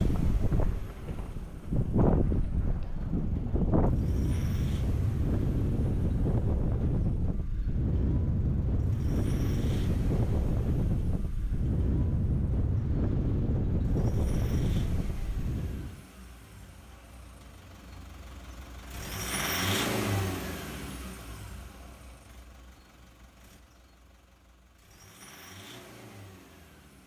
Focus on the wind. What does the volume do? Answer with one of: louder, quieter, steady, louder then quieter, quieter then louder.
steady.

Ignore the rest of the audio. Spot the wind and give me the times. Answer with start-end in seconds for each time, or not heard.
0.0-16.1.